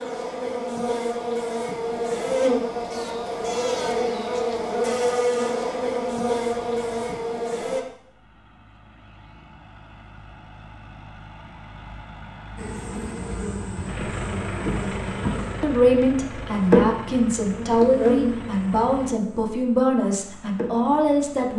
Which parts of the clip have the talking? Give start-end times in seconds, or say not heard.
15.6-21.5.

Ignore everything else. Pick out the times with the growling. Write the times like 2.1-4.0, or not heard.
not heard.